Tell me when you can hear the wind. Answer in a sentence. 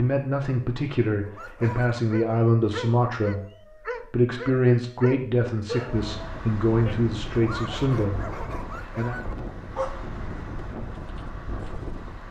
The wind can be heard from 5.8 to 12.2 s.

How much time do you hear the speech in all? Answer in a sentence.
The speech can be heard for 9 seconds in total.